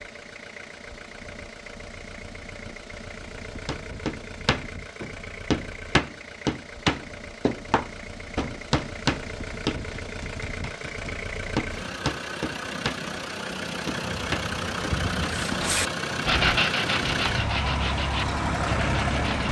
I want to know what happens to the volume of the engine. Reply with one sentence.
The loudness of the engine goes up.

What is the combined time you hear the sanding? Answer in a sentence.
You can hear the sanding for 4 seconds altogether.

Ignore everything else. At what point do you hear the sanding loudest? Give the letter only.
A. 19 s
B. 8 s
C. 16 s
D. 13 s
C.